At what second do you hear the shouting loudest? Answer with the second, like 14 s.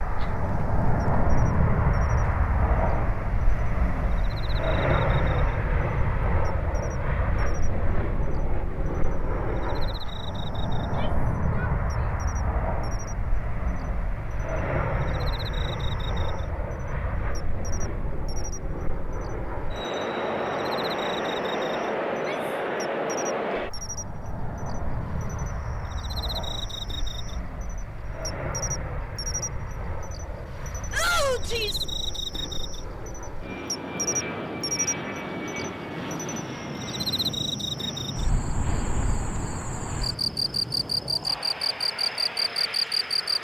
31 s.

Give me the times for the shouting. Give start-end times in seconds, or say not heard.
10.8-12.2, 22.1-22.6, 30.9-31.9.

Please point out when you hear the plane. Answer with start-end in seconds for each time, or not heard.
0.0-43.3.